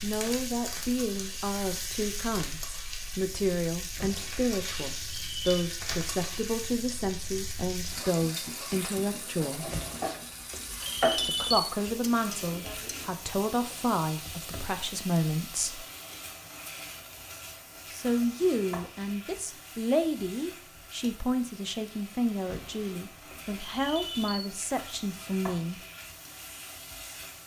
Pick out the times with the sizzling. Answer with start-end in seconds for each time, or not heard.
0.0-27.4.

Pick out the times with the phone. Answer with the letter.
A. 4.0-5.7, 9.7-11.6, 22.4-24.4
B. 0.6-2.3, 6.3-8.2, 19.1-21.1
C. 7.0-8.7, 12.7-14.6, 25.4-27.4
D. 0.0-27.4
A.